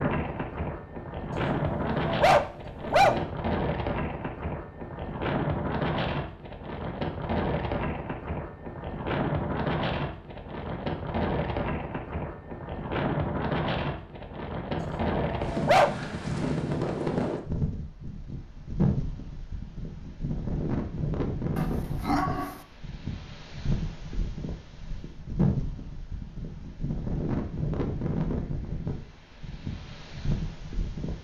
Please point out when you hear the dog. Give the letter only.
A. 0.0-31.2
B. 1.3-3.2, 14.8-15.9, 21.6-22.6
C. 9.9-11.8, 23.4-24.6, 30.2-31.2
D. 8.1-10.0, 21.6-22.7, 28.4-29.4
B.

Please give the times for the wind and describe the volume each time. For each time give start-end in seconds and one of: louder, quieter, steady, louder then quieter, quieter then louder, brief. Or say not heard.
0.0-31.2 steady.